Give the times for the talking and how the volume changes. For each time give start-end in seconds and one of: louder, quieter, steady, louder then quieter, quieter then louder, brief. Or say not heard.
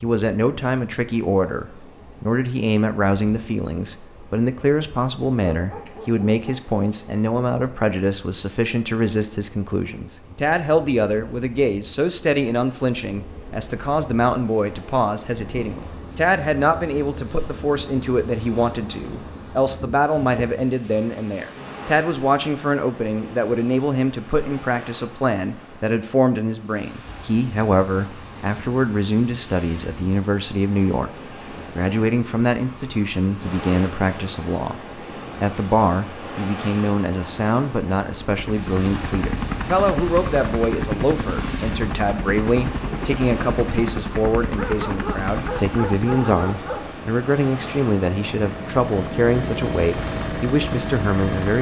0.0-34.8 steady
35.4-51.5 steady.